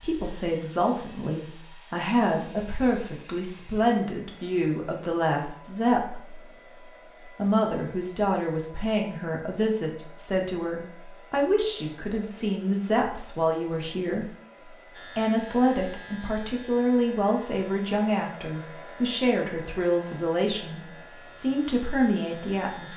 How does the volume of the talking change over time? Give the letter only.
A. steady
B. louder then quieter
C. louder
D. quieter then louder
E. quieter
A.